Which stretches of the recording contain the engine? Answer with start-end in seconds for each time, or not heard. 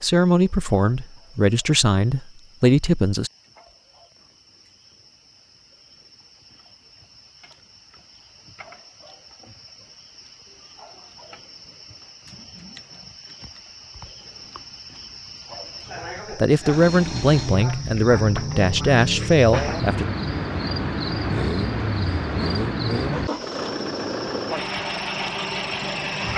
16.6-26.3.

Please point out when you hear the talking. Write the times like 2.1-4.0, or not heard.
0.0-3.3, 16.3-20.1.